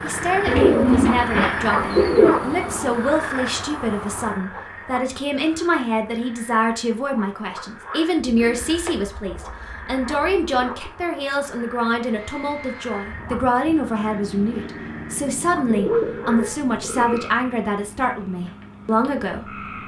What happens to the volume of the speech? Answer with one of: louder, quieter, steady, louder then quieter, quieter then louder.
steady.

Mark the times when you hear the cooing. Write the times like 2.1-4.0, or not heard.
0.5-2.3, 8.2-10.7, 15.7-17.2.